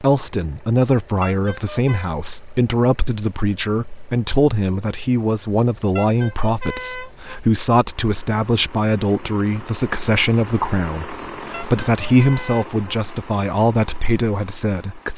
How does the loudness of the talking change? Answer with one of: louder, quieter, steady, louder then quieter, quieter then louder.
steady.